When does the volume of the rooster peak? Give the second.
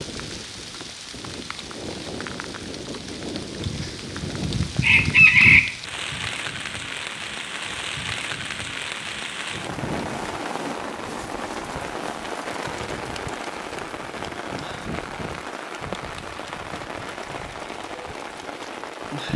5 s.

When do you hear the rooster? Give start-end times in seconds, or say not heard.
3.6-5.6.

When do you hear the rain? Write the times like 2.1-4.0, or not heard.
0.0-19.3.